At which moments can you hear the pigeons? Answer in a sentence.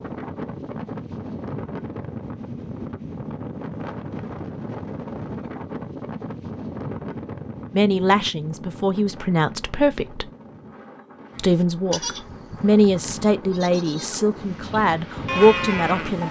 You can't hear the pigeons here.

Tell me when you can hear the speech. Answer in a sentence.
The speech can be heard from 7.7 to 10.3 s and from 11.3 to 16.2 s.